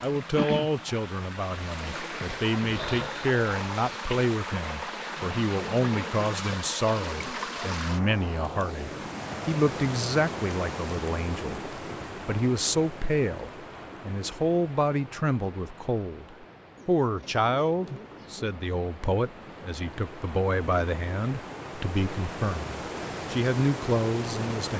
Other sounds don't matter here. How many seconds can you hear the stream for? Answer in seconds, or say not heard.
25 s.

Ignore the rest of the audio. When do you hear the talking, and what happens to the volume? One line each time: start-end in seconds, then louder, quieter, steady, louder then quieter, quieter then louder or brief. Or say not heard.
0.0-24.7 steady.